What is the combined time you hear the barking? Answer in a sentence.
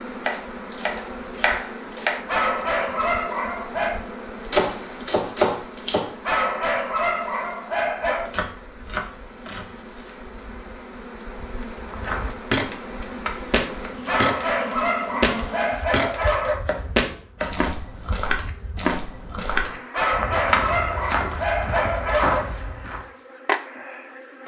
You can hear the barking for 9 seconds altogether.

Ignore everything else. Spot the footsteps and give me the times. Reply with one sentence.
The footsteps can be heard from 11.8 to 23.1 s.